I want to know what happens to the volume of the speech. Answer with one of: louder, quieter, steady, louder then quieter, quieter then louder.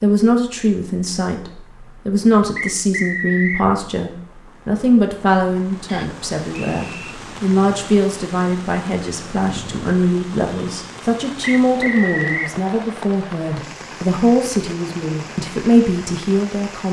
steady.